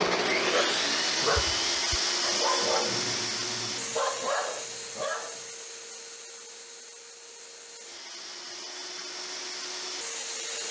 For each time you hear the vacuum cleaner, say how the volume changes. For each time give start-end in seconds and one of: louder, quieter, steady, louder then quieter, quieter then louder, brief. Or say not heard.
0.0-10.6 quieter then louder.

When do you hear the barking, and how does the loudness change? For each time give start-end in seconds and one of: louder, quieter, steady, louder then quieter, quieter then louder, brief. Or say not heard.
0.0-5.4 steady.